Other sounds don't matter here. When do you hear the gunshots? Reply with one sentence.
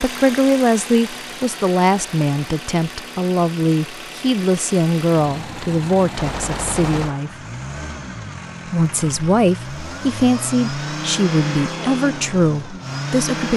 You can hear the gunshots from 6.2 to 7.3 s.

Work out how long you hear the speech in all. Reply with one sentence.
The speech can be heard for 12 seconds in total.